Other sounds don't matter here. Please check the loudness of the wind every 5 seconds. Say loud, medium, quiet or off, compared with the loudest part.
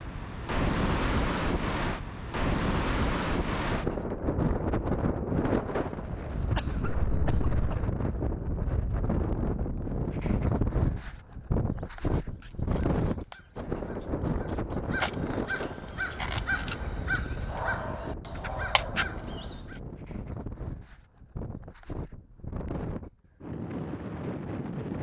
loud, loud, loud, medium, medium.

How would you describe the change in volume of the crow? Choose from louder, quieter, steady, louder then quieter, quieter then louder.
louder.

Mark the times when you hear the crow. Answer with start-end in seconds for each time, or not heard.
11.9-19.8.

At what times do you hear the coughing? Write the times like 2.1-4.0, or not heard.
6.5-7.8.